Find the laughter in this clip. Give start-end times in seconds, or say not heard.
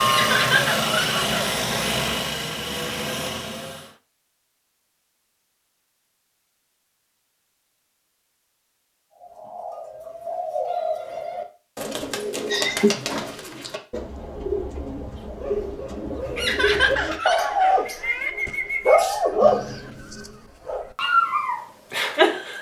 0.1-1.4, 12.5-13.1, 16.4-18.3.